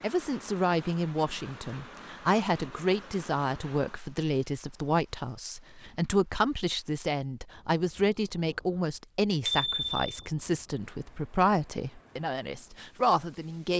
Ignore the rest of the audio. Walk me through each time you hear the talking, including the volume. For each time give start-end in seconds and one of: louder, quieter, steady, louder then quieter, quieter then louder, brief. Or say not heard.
0.0-13.7 steady.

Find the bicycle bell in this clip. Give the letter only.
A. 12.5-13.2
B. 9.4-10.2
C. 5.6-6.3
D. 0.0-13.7
B.